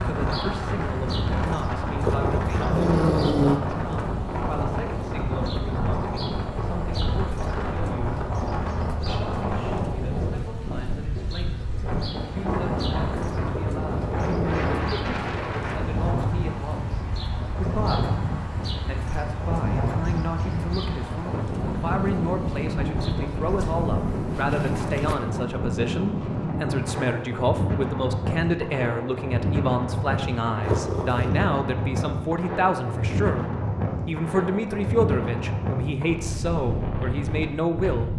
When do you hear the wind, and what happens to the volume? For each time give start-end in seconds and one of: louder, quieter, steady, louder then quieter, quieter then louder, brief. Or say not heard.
0.0-38.1 steady.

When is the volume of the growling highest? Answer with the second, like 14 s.
3 s.